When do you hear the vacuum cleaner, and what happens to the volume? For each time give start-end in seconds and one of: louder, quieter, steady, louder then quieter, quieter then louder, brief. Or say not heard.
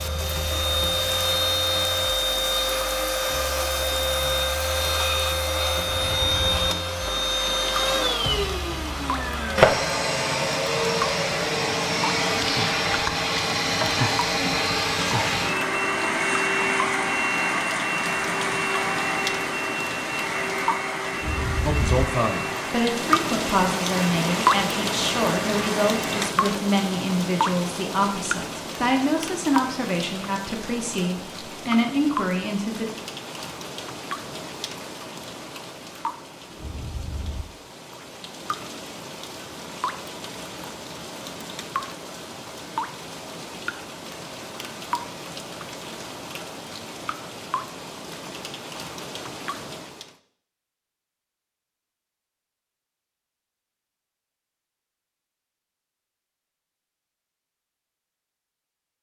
0.0-26.3 quieter.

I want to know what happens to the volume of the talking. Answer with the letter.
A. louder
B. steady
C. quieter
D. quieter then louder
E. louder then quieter
B.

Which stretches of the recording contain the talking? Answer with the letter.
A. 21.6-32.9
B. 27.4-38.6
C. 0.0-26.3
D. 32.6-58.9
A.